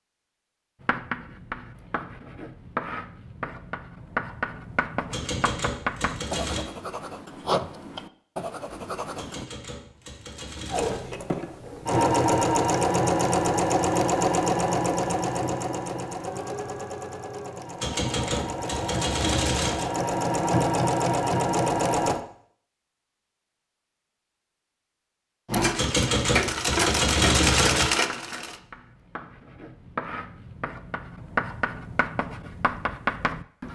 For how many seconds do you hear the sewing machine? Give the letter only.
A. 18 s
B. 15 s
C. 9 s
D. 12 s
B.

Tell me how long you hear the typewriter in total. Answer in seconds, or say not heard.
8 s.